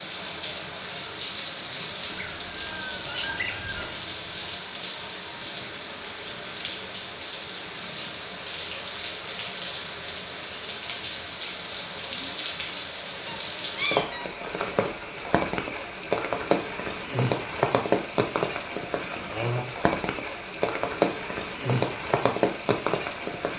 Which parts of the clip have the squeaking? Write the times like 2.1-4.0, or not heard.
2.0-3.9, 13.2-14.3.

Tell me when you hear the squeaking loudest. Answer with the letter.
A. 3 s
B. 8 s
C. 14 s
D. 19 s
C.